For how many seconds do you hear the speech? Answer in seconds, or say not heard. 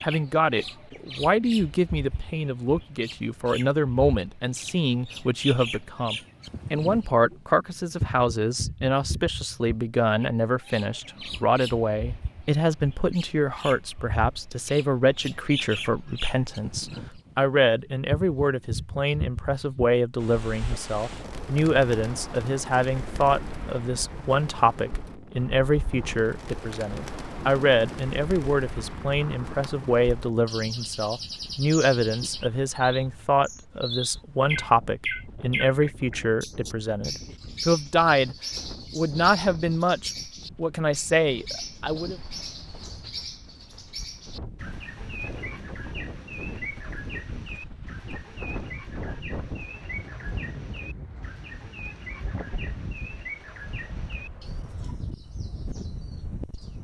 42 s.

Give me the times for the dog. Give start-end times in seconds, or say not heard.
not heard.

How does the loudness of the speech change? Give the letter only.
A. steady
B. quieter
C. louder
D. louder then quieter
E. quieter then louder
A.